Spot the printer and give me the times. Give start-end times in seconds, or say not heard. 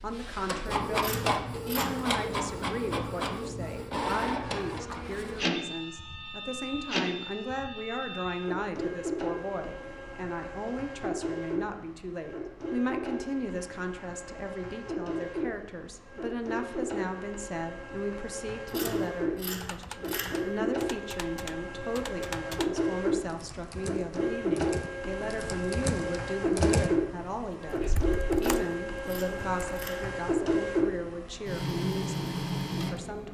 0.0-33.3.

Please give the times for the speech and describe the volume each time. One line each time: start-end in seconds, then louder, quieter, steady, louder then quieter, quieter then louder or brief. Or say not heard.
0.0-33.3 steady.